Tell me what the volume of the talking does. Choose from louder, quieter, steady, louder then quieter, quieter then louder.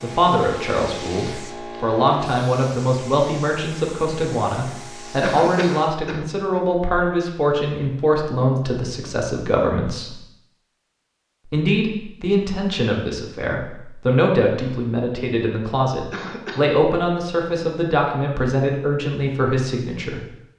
steady.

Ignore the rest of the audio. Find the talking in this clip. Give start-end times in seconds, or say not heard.
0.0-10.2, 11.4-20.2.